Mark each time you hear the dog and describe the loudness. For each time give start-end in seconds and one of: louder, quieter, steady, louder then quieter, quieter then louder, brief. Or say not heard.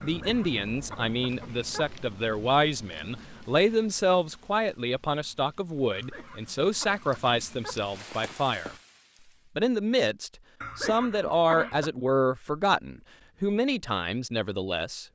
not heard.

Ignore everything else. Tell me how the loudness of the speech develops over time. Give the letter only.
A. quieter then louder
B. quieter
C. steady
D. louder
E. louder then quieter
C.